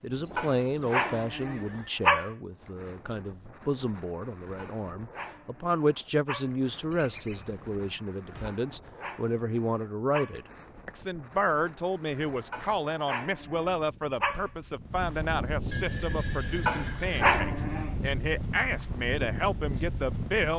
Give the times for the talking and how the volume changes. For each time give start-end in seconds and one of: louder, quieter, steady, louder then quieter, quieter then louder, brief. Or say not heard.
0.0-20.5 steady.